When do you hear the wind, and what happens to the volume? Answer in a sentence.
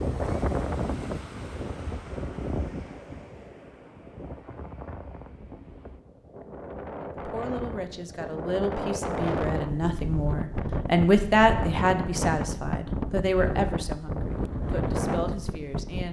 You can hear the wind from 0.0 to 16.0 s, getting quieter then louder.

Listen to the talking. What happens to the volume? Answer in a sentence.
The volume of the talking goes up, then down.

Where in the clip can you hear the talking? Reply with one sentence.
The talking can be heard from 7.2 to 16.0 s.